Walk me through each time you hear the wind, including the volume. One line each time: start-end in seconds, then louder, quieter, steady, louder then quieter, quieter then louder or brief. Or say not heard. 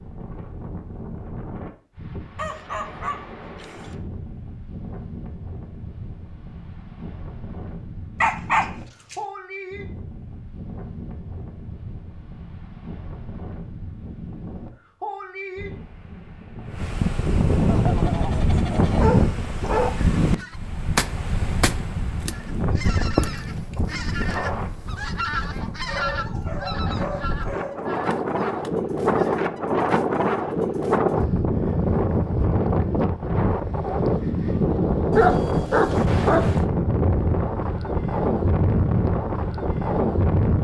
0.0-40.5 louder.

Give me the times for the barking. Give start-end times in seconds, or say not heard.
2.4-4.0, 8.2-9.2, 18.9-20.1, 25.9-27.9, 35.1-36.6.